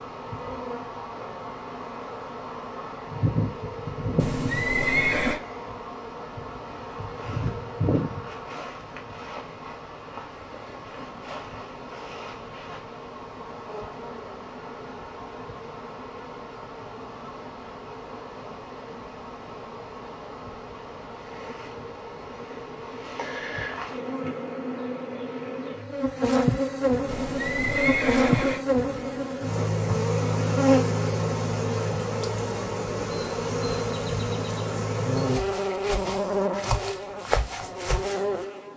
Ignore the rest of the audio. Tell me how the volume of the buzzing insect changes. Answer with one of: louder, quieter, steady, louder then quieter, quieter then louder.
quieter then louder.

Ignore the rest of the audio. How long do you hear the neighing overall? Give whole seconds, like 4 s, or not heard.
3 s.